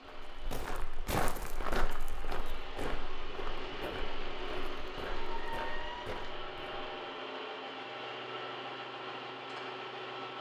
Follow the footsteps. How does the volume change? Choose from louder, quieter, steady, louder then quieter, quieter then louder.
quieter.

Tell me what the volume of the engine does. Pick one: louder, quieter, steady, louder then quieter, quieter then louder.
louder.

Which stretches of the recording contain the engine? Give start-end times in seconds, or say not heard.
0.0-10.3.